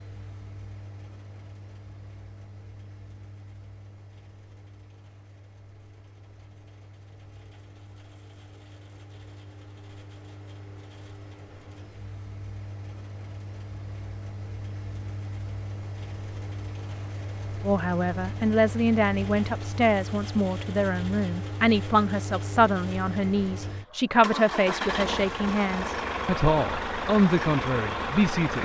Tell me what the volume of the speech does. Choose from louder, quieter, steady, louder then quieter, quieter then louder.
steady.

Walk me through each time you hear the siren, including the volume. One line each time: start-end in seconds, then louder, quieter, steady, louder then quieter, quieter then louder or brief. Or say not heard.
not heard.